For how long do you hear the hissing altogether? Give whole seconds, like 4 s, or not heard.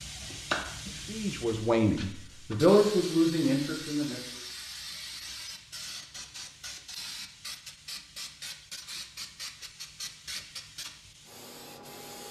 12 s.